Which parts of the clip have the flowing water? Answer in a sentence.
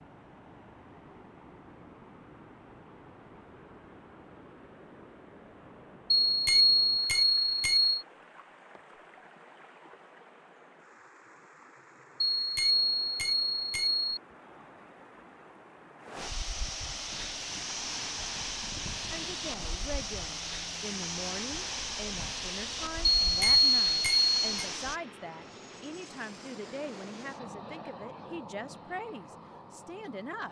The flowing water can be heard from 0.0 to 25.0 s.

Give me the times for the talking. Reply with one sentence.
The talking can be heard from 19.1 to 30.4 s.